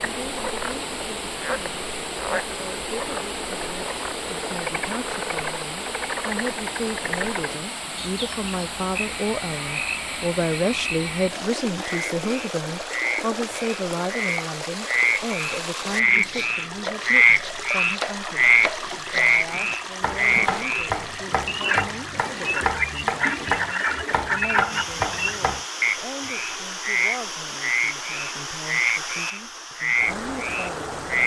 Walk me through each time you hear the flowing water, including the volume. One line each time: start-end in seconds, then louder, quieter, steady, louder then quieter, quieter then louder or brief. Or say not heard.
0.0-31.2 steady.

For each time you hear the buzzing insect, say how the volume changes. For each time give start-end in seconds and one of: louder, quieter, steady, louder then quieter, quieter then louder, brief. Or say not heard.
not heard.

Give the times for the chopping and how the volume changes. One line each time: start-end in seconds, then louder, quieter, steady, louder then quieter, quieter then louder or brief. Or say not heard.
15.8-25.6 louder.